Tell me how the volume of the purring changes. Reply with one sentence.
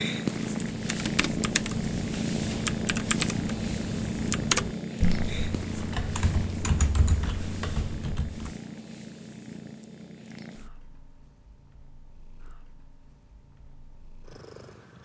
The loudness of the purring goes down.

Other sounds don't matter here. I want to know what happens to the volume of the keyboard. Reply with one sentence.
The loudness of the keyboard goes up, then down.